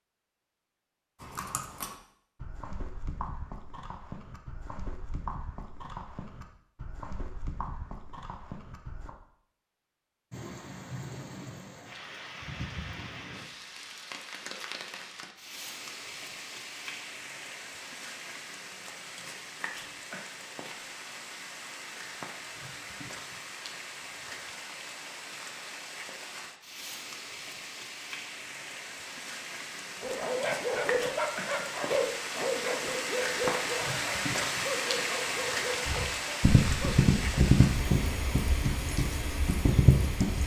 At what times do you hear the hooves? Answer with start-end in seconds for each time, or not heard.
1.2-9.1, 35.9-40.4.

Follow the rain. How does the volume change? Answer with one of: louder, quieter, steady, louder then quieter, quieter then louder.
louder.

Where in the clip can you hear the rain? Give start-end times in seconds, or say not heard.
10.3-40.4.